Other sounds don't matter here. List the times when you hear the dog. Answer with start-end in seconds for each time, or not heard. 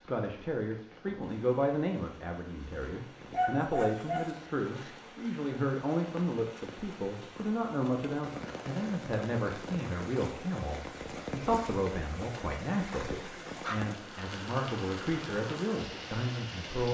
3.3-4.9, 13.1-13.8.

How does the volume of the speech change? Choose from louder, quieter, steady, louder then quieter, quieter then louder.
steady.